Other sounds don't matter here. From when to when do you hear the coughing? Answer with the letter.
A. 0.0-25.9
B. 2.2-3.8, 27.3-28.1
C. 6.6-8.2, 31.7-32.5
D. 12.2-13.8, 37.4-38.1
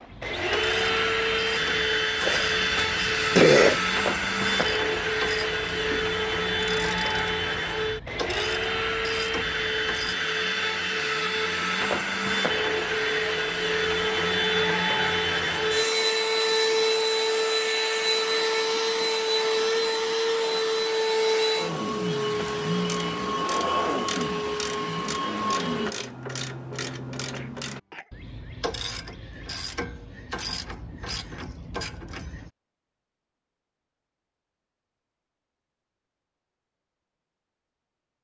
B.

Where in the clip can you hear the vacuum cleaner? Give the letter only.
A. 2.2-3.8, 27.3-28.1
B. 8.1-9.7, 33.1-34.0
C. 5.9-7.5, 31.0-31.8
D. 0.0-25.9
D.